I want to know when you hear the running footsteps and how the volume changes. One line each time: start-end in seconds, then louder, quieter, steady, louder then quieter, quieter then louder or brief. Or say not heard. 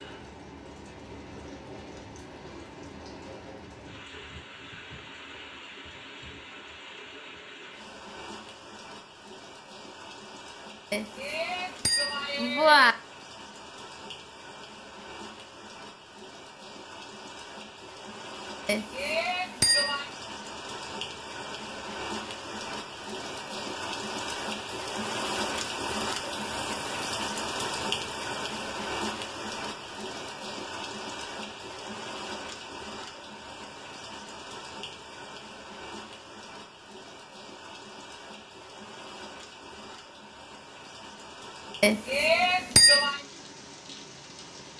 not heard.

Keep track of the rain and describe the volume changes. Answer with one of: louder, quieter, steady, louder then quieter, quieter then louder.
louder then quieter.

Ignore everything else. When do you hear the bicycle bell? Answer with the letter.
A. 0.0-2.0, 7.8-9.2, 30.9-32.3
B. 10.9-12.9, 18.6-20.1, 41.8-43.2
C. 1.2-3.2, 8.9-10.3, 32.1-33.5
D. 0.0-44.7
B.